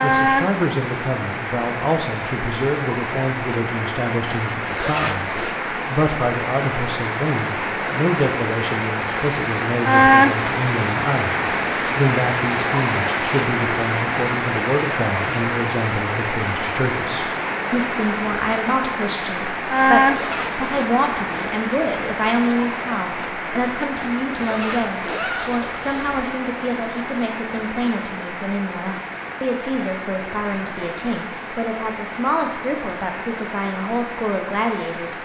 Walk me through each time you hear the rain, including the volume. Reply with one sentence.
You can hear the rain from 0.0 to 35.2 s, getting louder then quieter.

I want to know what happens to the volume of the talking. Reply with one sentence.
The loudness of the talking stays about the same.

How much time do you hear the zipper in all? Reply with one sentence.
You can hear the zipper for 4 seconds altogether.